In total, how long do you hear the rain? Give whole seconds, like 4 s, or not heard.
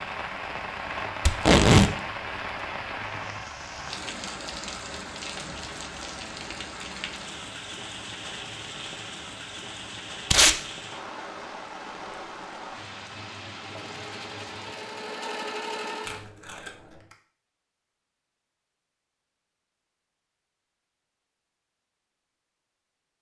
15 s.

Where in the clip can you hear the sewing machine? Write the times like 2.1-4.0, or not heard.
13.8-16.2.